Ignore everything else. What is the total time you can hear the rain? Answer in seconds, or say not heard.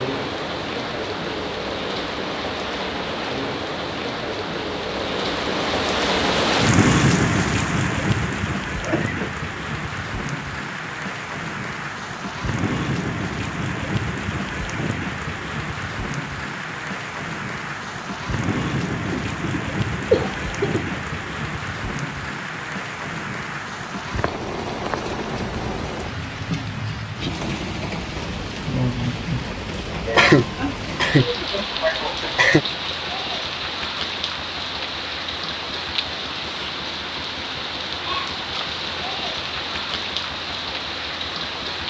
42 s.